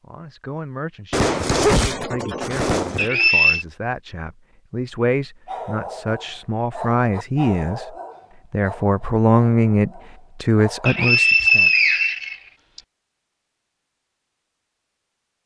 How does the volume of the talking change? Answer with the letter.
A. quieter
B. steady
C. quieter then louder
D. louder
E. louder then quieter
D.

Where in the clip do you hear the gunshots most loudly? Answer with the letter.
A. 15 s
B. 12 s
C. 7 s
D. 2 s
D.